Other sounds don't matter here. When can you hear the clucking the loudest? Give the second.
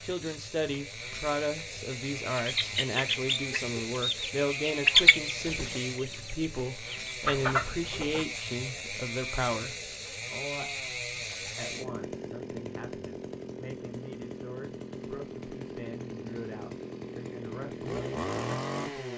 5 s.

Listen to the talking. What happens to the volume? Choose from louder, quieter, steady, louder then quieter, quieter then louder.
quieter.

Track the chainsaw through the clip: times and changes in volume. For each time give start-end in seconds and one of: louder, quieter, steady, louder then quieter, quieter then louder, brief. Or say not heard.
0.0-19.1 steady.